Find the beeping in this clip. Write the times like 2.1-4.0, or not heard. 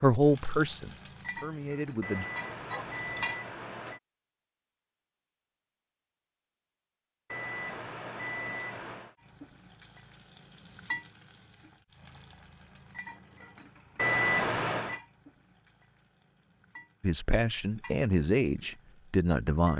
2.0-4.0, 7.3-9.1, 13.9-15.0.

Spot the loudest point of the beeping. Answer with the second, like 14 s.
14 s.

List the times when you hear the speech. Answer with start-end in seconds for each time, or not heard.
0.0-2.2, 17.0-19.7.